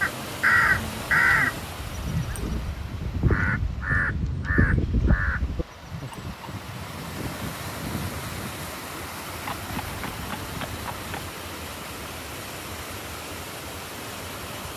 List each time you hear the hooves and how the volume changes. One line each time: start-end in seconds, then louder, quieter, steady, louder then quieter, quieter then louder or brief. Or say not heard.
0.5-11.3 louder then quieter.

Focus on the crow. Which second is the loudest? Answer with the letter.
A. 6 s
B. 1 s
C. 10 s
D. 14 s
B.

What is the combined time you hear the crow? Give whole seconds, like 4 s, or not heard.
6 s.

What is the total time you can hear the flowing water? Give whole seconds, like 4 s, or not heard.
15 s.